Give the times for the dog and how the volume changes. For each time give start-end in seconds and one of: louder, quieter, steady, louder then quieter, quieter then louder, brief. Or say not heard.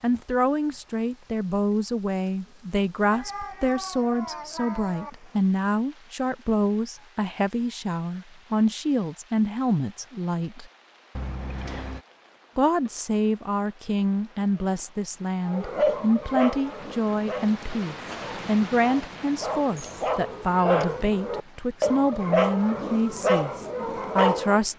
15.4-24.6 quieter then louder.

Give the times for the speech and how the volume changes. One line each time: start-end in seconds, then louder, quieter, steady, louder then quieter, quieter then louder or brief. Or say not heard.
0.0-10.7 steady
12.6-24.7 steady.